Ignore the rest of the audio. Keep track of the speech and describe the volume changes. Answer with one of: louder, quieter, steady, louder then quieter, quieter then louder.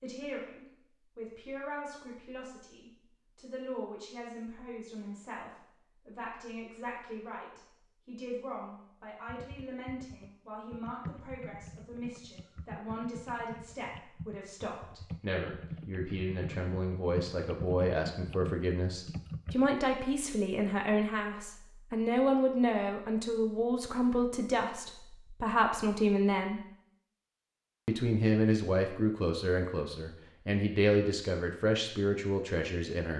louder.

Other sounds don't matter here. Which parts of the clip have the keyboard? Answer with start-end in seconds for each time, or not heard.
9.2-19.7.